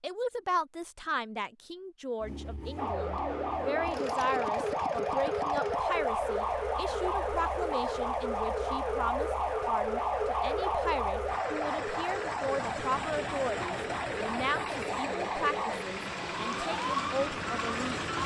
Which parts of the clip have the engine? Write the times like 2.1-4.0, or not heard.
2.2-18.2.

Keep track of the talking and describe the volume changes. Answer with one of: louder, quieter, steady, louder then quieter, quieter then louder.
steady.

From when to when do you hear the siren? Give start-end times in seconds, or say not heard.
2.8-18.2.